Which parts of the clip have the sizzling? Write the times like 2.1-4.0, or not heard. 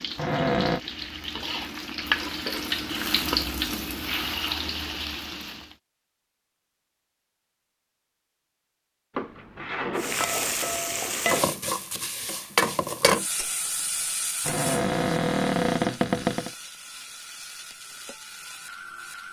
0.0-5.8, 9.9-19.2.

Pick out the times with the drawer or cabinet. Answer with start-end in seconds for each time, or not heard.
0.1-0.8, 9.2-10.6, 14.4-16.5.